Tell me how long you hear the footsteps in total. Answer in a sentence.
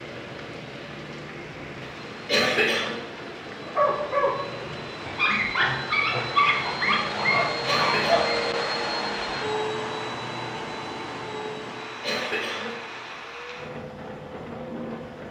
The footsteps can't be heard in this clip.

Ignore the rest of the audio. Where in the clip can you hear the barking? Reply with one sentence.
The barking can be heard from 3.6 to 8.4 s.